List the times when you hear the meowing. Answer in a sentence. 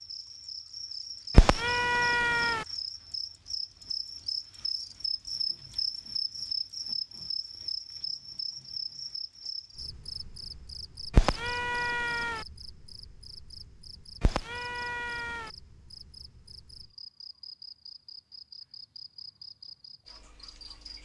The meowing can be heard from 1.4 to 2.6 s, from 11.1 to 12.4 s and from 14.2 to 15.5 s.